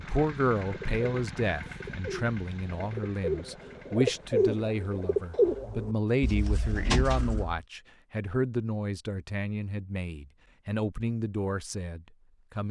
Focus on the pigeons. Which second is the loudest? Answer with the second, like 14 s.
5 s.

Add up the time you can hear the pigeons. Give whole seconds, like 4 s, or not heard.
7 s.